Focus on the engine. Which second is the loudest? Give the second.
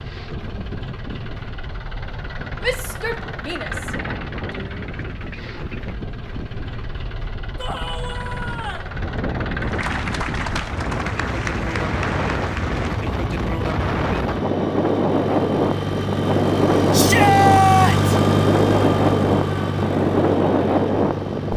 18 s.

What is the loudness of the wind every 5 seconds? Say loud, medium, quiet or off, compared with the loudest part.
quiet, quiet, medium, loud, loud.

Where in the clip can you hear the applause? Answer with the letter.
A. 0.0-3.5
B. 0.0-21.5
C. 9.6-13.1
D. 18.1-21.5
C.